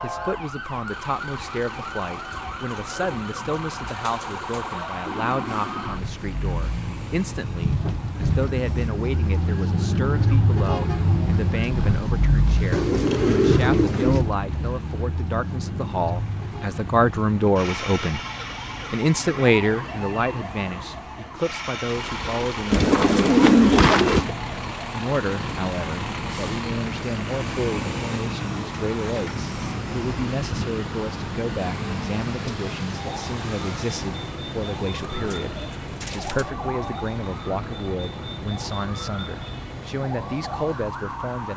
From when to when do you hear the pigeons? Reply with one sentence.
You can hear the pigeons from 2.3 to 4.8 s, from 12.7 to 14.3 s, from 22.7 to 24.3 s and from 35.0 to 36.5 s.